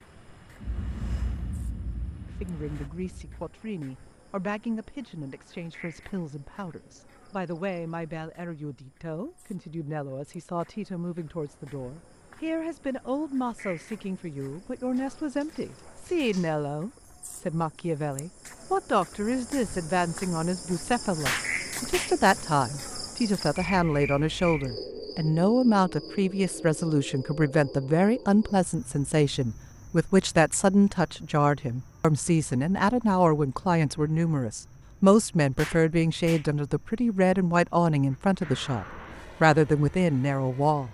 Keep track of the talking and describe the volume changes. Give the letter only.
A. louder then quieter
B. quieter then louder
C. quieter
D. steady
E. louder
E.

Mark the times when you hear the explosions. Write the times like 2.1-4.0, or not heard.
0.6-3.5, 21.2-22.1, 35.5-36.5.